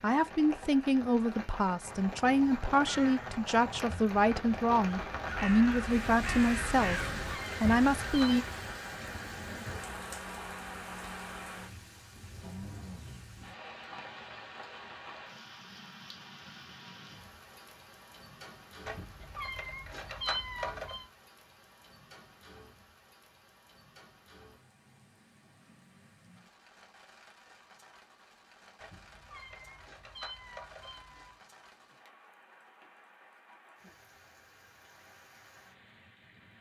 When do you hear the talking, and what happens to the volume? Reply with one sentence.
The talking can be heard from 0.0 to 8.4 s, at a steady volume.